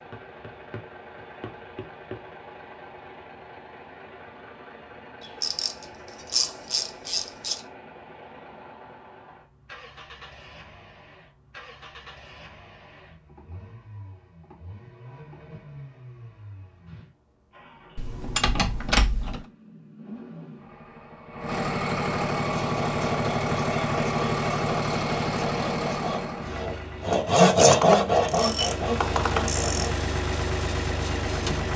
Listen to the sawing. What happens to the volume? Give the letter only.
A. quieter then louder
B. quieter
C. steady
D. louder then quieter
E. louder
D.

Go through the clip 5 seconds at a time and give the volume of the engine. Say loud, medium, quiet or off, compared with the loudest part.
quiet, quiet, quiet, quiet, loud, loud, loud.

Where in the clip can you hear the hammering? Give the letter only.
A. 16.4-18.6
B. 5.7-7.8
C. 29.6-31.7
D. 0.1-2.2
D.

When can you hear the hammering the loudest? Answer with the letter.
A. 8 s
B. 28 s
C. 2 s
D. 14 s
C.